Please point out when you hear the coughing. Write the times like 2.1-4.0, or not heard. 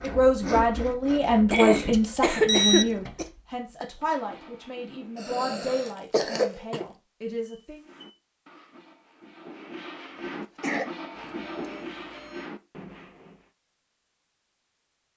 1.5-3.2, 5.2-6.8, 10.2-10.9.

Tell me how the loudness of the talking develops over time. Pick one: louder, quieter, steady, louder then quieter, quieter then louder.
quieter.